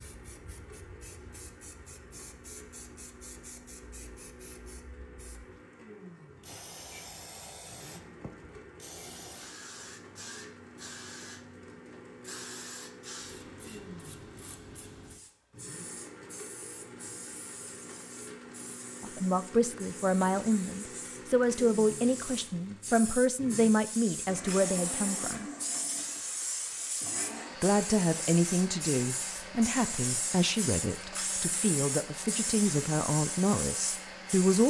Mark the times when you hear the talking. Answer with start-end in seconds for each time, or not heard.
19.0-25.5, 27.6-34.6.